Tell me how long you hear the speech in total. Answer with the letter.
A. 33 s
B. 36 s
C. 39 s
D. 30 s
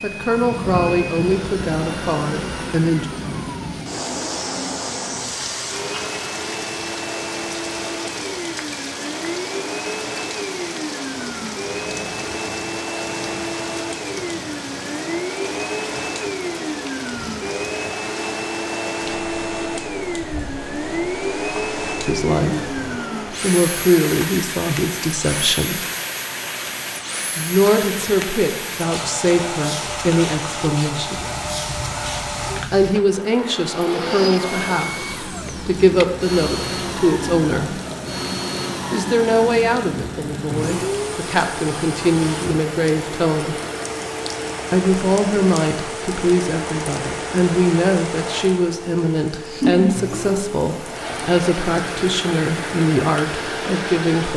D.